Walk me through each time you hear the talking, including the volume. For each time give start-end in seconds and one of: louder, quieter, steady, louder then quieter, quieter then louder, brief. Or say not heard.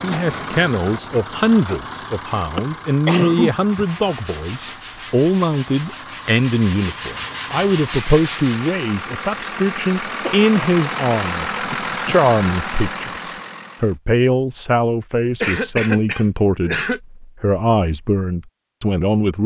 0.0-19.4 steady.